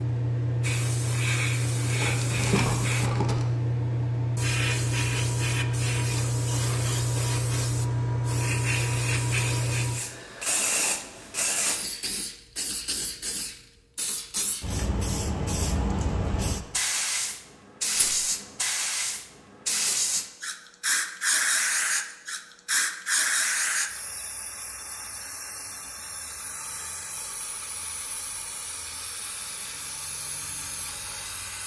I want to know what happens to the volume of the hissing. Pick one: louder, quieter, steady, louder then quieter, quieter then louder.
quieter.